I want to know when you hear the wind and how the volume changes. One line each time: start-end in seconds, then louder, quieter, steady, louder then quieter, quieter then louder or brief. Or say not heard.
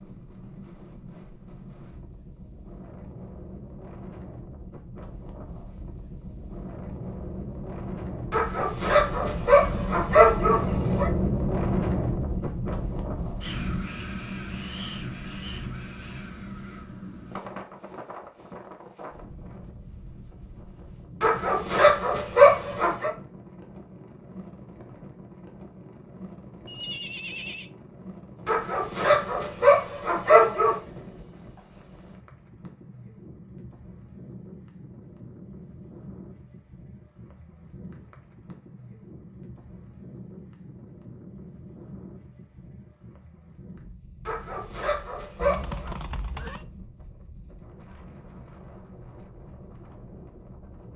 0.0-50.9 louder then quieter.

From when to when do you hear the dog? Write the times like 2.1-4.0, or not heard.
8.3-11.1, 21.2-23.1, 28.4-30.8, 44.2-46.0.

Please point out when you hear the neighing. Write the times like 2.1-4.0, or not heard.
9.6-10.1, 26.6-27.7, 45.4-46.6.